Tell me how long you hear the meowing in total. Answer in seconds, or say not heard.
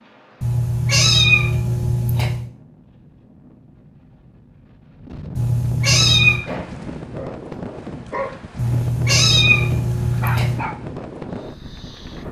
5 s.